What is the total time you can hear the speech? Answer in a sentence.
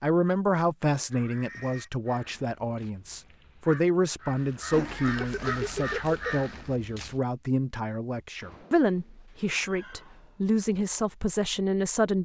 You can hear the speech for 12 seconds altogether.